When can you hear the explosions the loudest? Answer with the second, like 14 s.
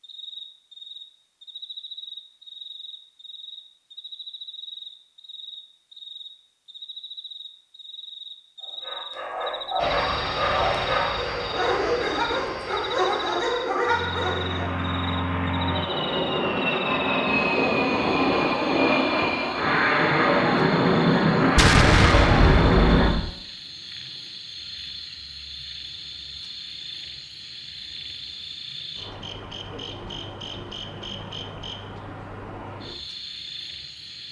22 s.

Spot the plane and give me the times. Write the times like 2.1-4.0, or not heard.
9.8-23.1.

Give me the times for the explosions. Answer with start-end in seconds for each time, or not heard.
21.6-23.3.